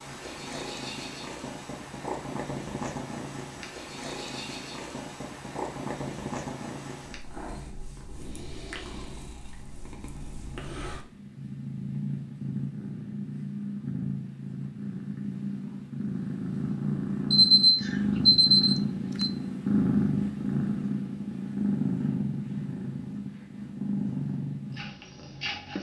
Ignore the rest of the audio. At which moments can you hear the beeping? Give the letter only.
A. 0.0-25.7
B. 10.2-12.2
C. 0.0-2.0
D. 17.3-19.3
D.